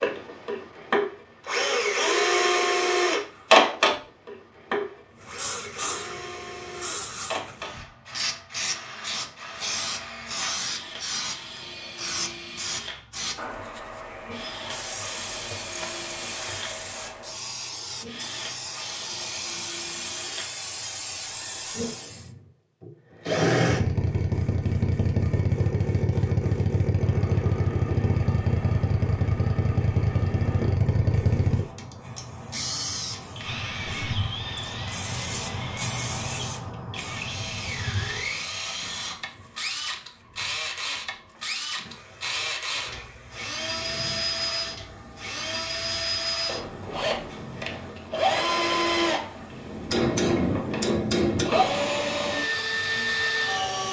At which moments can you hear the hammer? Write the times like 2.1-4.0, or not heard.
49.9-51.5.